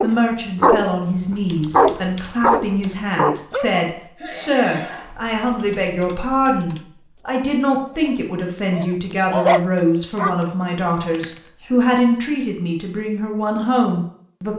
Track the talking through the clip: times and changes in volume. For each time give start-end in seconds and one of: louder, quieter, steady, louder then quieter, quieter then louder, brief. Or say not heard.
0.0-14.5 steady.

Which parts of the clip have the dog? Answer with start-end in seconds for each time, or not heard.
0.0-3.9, 7.2-10.3.